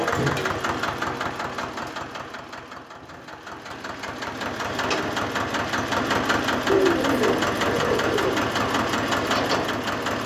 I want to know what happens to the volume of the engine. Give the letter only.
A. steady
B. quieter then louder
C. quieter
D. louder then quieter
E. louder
B.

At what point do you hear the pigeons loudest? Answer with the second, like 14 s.
7 s.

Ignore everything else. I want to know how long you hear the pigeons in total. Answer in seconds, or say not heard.
2 s.